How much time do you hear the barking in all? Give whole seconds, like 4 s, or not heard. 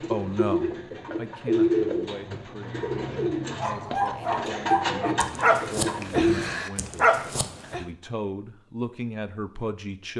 4 s.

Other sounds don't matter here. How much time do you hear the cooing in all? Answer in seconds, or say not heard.
6 s.